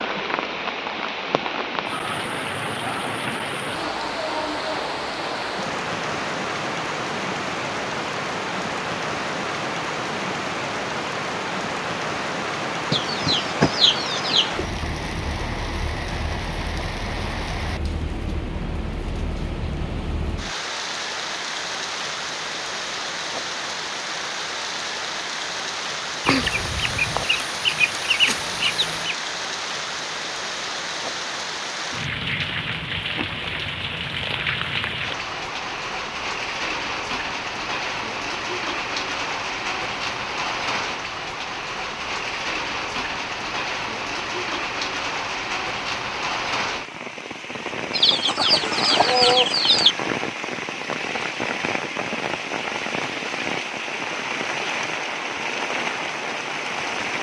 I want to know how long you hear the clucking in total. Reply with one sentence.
You can hear the clucking for 7 seconds altogether.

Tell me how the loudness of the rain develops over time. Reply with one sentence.
The volume of the rain stays about the same.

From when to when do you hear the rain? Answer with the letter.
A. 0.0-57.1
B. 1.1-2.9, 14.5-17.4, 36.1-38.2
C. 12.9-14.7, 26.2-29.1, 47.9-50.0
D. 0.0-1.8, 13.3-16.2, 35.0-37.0
A.